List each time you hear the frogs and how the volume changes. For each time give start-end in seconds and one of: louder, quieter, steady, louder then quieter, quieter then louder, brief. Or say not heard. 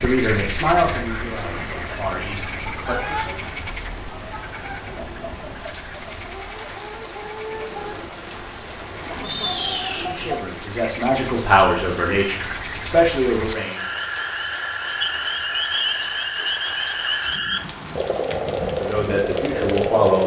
0.0-20.2 quieter then louder.